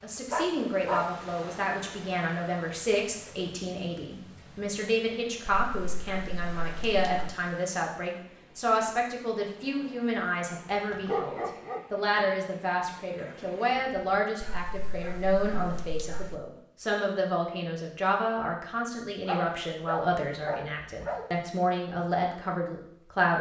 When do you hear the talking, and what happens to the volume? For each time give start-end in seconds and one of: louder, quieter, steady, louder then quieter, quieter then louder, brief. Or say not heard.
0.0-23.3 steady.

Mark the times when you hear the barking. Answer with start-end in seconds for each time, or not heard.
0.3-1.1, 5.5-7.3, 10.9-11.8, 14.4-16.4, 19.2-21.2.